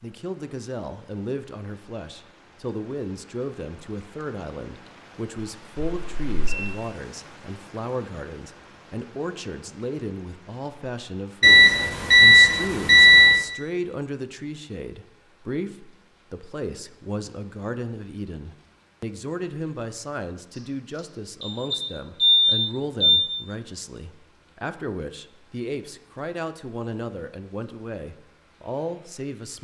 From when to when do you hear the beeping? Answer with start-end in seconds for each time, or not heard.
5.8-6.7, 11.4-13.4, 20.9-23.3.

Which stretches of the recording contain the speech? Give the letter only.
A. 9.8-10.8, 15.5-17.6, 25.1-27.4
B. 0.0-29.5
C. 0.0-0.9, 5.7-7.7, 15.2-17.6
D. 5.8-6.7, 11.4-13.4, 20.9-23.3
B.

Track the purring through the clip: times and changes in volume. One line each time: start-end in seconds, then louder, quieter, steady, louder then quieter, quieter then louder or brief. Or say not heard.
not heard.